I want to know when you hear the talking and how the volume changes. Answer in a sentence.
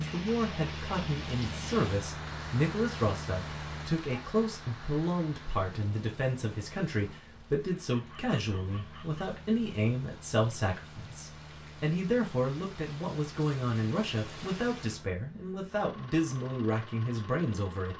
The talking can be heard from 0.0 to 17.9 s, at a steady volume.